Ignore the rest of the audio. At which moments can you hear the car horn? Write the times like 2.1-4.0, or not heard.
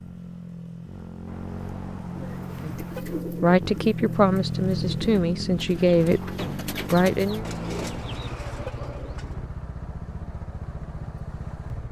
1.2-3.2, 7.2-8.8.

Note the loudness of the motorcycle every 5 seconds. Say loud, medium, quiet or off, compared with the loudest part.
loud, loud, medium.